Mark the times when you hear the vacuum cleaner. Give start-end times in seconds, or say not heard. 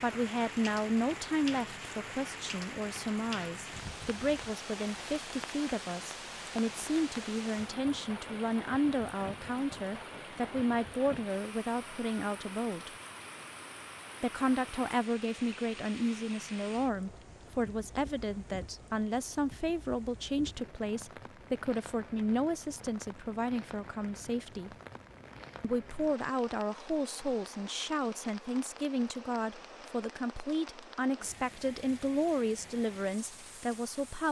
not heard.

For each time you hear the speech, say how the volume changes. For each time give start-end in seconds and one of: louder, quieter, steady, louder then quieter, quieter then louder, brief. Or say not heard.
0.0-12.9 steady
14.2-24.7 steady
25.6-34.2 steady.